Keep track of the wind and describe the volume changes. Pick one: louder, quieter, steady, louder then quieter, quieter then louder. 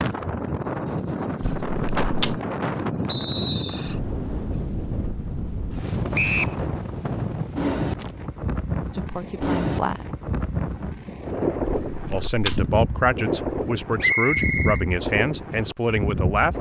steady.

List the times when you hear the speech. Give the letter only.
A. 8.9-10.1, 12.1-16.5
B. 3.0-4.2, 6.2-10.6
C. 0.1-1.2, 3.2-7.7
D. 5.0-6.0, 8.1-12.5
A.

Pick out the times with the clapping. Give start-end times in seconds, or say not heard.
not heard.